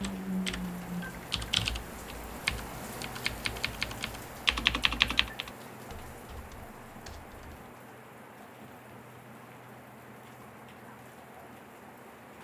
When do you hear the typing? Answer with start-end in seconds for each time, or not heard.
0.0-7.7.